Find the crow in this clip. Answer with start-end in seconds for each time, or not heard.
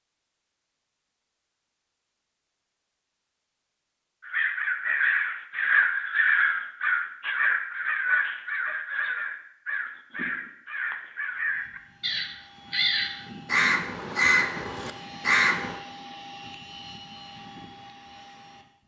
4.2-15.8.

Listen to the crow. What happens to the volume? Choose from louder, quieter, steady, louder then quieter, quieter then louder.
quieter then louder.